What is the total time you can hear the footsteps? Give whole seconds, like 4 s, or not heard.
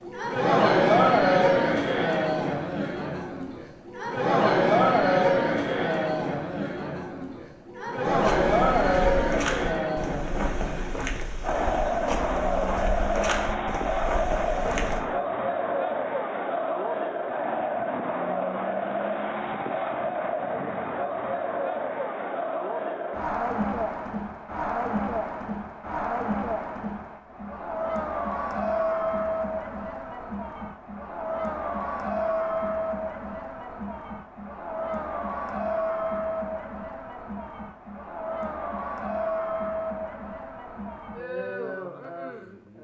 7 s.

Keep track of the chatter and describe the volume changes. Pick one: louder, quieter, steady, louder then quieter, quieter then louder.
quieter.